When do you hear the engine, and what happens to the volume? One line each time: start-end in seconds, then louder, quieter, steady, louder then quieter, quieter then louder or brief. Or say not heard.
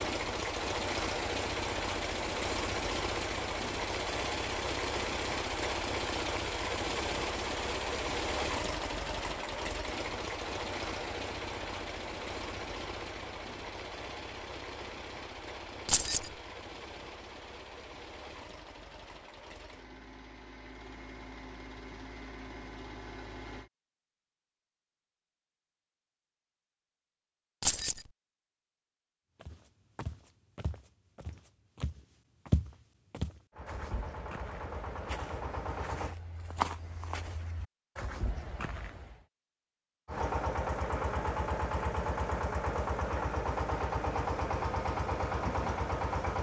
0.0-23.7 quieter
33.5-36.1 brief
40.0-46.3 steady.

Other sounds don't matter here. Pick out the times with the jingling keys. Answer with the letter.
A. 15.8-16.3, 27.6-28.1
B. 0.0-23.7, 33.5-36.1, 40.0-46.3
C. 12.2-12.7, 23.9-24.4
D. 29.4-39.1
A.